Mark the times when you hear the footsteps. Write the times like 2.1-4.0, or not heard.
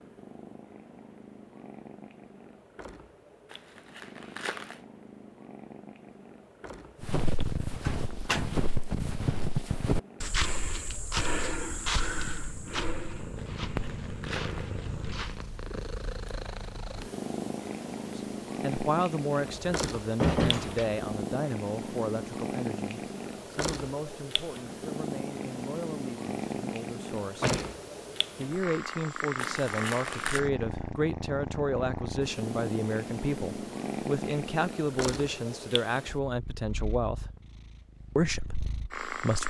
7.0-15.4.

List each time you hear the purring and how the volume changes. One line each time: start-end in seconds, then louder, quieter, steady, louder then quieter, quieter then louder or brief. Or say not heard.
0.0-39.4 louder.